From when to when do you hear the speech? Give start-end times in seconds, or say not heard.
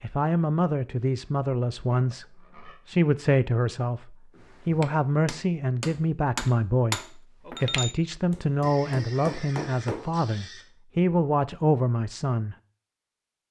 0.0-12.6.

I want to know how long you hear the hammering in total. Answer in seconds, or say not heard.
6 s.